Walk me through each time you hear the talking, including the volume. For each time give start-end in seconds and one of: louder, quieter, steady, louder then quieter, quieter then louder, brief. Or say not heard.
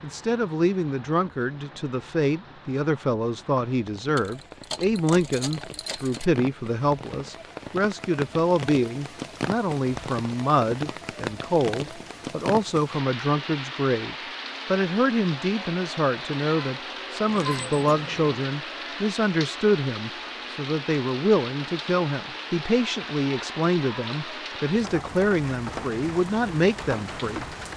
0.0-27.4 steady.